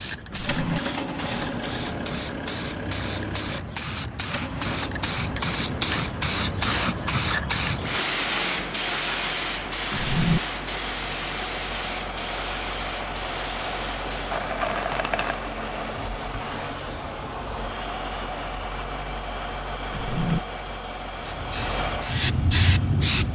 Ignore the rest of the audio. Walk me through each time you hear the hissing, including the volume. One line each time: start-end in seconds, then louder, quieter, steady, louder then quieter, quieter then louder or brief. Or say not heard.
0.0-14.4 louder then quieter
21.1-23.3 brief.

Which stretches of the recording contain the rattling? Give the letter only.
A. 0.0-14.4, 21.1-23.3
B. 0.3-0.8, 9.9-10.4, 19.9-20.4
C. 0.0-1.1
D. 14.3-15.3
D.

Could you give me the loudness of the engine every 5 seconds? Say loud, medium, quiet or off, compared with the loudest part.
loud, medium, loud, loud, loud.